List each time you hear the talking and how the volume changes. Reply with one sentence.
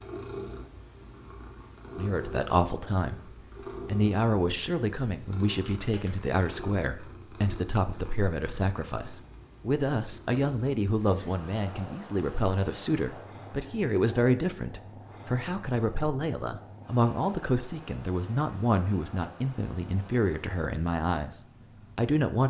The talking can be heard from 1.9 to 22.4 s, at a steady volume.